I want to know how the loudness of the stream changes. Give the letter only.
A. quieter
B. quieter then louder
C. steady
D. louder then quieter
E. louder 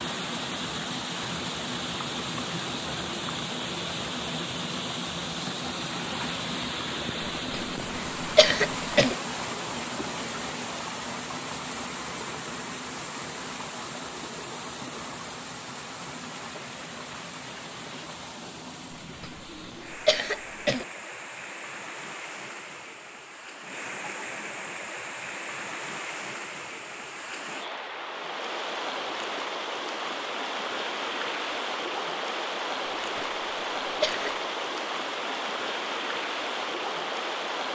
B.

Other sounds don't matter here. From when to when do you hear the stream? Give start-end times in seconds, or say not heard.
0.0-37.7.